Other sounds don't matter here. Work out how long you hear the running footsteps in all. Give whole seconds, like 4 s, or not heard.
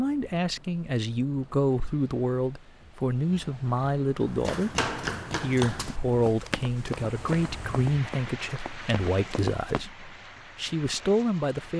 6 s.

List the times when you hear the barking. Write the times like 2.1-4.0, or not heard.
not heard.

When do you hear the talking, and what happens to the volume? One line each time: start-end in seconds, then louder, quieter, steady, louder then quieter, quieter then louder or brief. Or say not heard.
0.0-11.7 steady.